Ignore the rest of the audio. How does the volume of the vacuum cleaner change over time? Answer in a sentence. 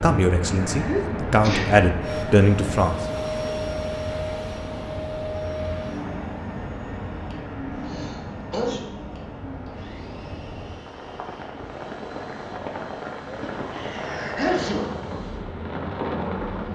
The volume of the vacuum cleaner goes down.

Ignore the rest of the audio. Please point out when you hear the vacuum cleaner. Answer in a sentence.
The vacuum cleaner can be heard from 2.0 to 16.7 s.